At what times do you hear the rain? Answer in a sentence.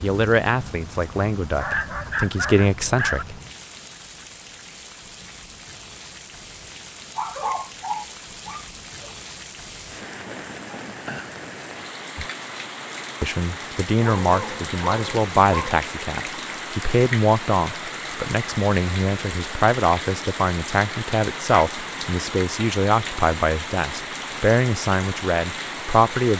The rain can be heard from 0.0 to 26.3 s.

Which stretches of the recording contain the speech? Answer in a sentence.
You can hear the speech from 0.0 to 3.4 s and from 13.2 to 26.3 s.